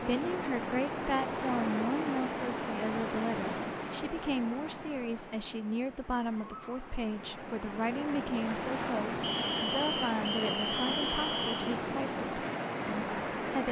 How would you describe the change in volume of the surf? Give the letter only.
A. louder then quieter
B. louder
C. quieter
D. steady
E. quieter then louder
E.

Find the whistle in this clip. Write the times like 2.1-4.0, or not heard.
9.2-11.8.